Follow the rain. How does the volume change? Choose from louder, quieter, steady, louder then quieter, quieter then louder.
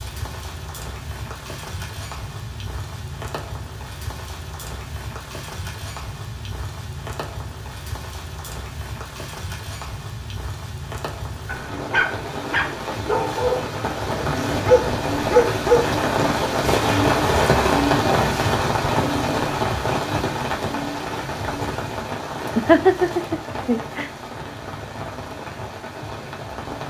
louder then quieter.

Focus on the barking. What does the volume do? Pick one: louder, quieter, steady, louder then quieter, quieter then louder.
louder.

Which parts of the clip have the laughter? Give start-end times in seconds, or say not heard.
22.6-24.1.